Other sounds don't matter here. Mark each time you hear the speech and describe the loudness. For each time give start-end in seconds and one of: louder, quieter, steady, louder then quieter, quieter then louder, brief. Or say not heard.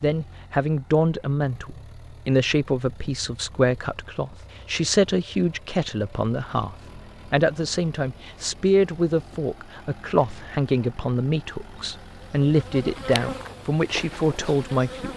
0.0-15.1 steady.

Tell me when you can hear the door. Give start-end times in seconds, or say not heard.
not heard.